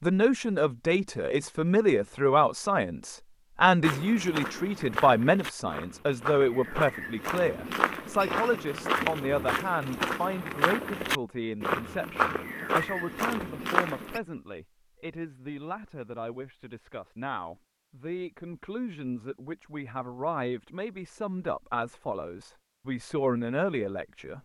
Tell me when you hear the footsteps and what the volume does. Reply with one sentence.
The footsteps can be heard from 3.8 to 14.2 s, getting louder.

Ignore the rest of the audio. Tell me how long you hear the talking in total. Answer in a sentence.
You can hear the talking for 24 seconds altogether.